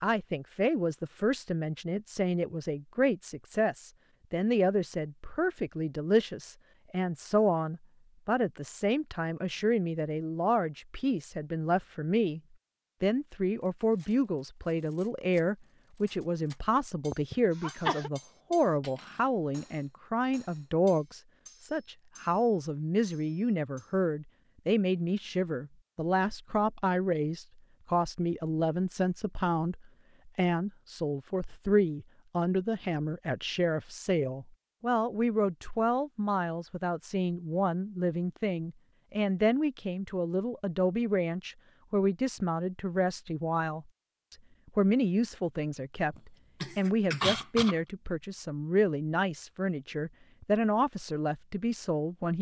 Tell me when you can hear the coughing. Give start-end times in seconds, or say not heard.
17.1-18.1, 46.1-47.8.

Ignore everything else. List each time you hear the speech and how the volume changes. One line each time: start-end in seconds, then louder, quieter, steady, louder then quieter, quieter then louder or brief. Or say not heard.
0.0-12.4 steady
13.0-52.3 steady.